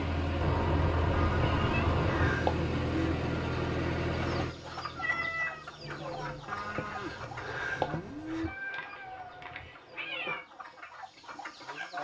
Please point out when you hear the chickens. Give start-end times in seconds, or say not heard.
4.1-11.9.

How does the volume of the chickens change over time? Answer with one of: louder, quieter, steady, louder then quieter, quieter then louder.
quieter then louder.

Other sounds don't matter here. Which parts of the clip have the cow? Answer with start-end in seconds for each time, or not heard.
1.1-3.1, 6.5-8.5.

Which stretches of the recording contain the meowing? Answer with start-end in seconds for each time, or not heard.
0.4-2.4, 5.0-6.5, 8.4-10.4.